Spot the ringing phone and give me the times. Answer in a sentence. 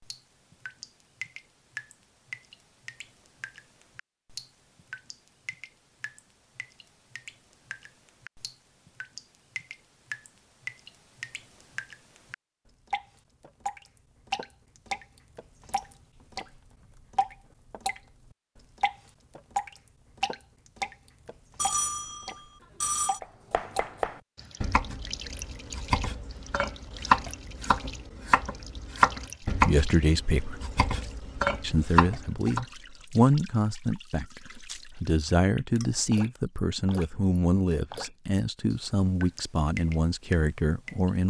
You can hear the ringing phone from 21.6 to 23.2 s.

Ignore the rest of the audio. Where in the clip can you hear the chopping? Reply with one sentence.
You can hear the chopping from 23.2 to 32.6 s.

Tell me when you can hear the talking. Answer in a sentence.
The talking can be heard from 29.4 to 30.6 s and from 31.6 to 41.2 s.